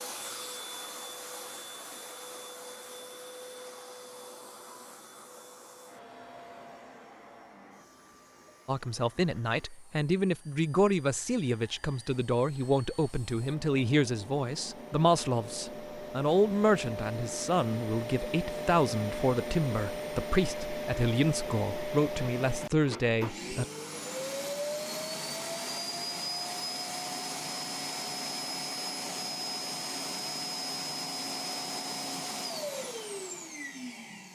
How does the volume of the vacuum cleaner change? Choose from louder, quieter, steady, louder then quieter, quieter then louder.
quieter then louder.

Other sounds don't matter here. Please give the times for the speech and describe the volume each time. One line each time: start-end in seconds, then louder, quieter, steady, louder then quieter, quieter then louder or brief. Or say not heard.
8.7-23.6 steady.